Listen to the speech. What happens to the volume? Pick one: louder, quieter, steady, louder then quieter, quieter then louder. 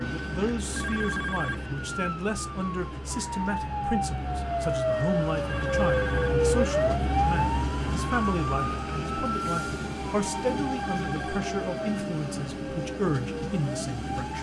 steady.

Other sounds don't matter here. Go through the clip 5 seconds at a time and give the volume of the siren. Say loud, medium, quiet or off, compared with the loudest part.
medium, loud, medium.